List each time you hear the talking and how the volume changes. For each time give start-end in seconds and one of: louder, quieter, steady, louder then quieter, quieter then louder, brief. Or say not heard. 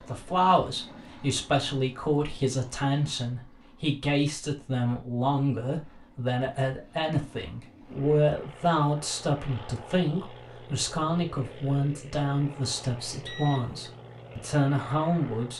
0.0-15.5 steady.